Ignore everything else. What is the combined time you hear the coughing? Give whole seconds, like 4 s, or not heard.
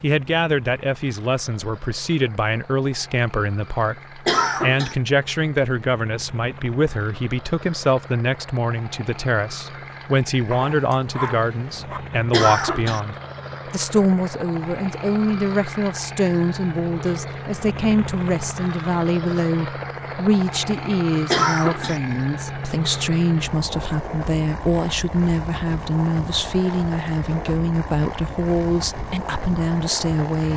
2 s.